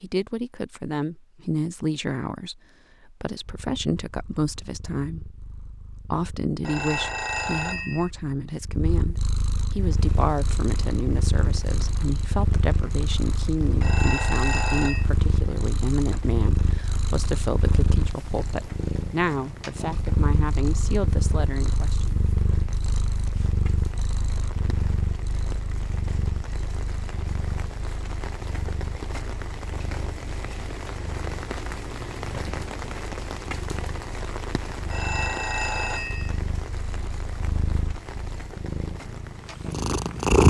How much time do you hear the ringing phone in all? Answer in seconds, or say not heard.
4 s.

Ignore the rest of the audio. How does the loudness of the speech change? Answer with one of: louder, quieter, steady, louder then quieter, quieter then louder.
steady.